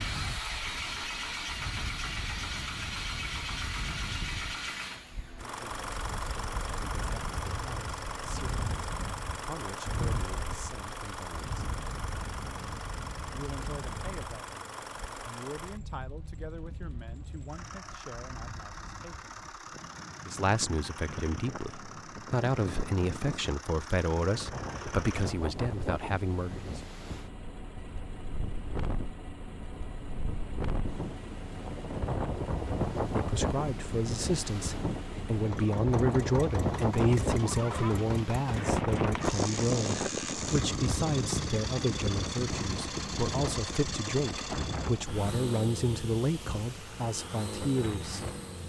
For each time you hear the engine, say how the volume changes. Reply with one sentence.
You can hear the engine from 0.0 to 48.6 s, getting quieter then louder.